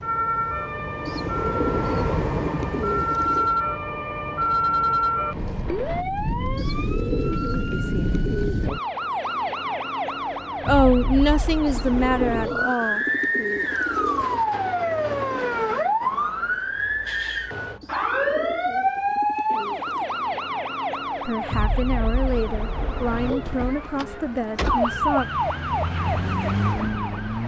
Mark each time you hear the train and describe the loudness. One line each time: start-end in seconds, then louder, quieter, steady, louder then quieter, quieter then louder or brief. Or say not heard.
0.0-6.0 louder then quieter.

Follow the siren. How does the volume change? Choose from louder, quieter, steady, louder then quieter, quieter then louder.
steady.